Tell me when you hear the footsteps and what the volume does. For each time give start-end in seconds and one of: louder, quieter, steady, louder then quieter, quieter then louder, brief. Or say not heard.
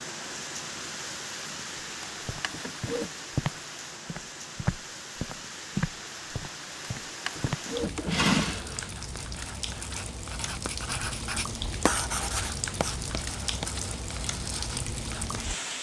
1.8-7.7 louder then quieter.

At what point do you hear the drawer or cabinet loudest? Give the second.
8 s.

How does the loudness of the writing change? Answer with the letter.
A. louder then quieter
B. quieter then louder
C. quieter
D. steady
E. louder
A.